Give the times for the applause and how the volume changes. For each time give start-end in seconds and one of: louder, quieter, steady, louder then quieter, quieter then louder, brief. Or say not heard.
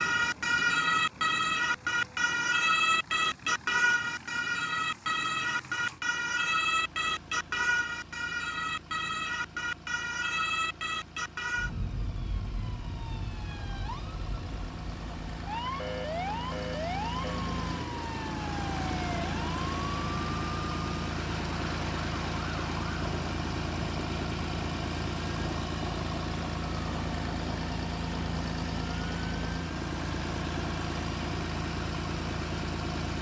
not heard.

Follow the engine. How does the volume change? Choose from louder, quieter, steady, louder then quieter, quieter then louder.
louder.